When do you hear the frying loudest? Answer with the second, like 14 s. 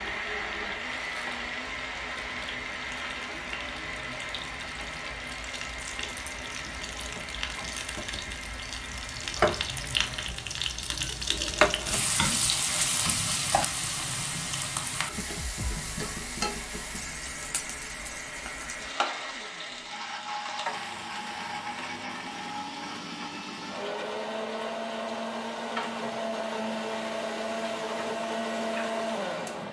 12 s.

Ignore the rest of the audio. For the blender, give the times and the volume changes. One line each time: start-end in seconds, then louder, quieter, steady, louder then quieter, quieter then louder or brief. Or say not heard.
0.0-10.3 quieter
12.4-29.6 louder.